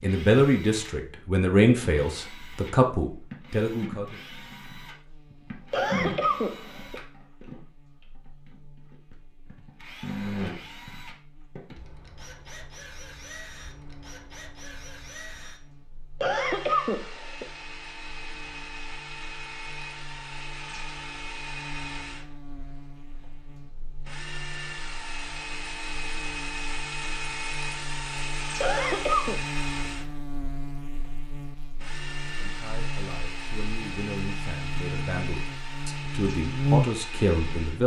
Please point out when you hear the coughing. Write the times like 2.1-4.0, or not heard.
5.7-7.0, 16.2-17.4, 28.6-29.4.